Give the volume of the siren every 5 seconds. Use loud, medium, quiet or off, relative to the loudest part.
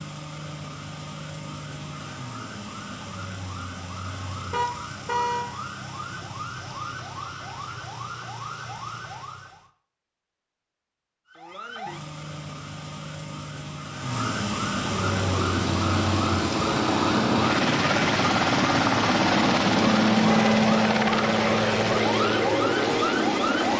medium, medium, loud, loud, loud.